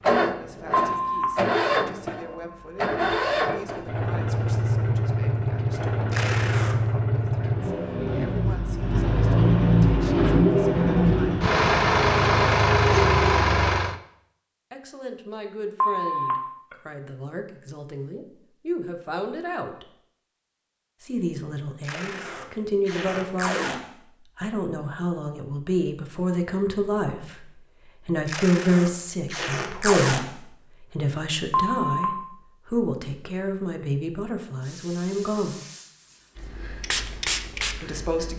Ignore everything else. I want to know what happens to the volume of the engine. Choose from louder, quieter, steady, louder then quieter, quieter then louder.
louder.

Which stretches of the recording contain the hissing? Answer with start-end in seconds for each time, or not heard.
34.6-38.3.